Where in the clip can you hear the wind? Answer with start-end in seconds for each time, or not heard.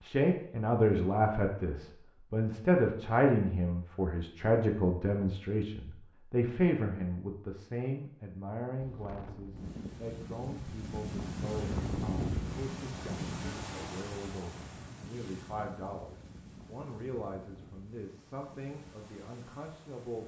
8.8-20.2.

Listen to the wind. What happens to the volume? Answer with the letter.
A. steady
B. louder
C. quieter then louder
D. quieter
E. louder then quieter
E.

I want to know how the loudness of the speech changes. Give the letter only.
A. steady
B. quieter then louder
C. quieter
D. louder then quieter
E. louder
C.